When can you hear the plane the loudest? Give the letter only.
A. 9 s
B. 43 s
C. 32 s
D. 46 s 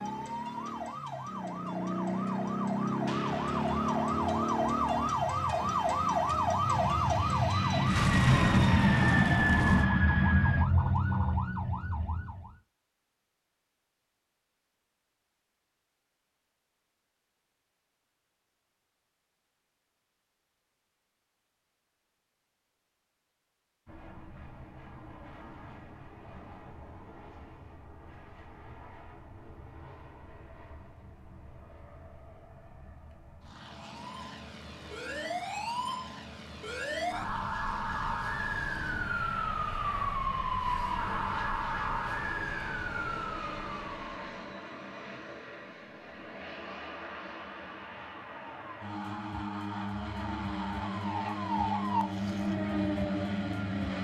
A.